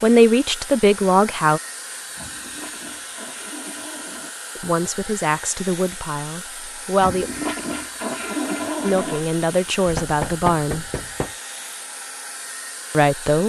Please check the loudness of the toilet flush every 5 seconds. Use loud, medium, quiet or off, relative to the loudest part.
quiet, loud, off.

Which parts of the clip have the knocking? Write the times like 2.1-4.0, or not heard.
9.8-11.3.